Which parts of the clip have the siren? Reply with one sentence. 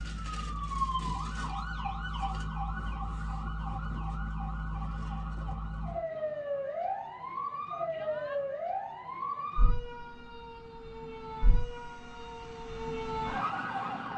You can hear the siren from 0.0 to 14.1 s.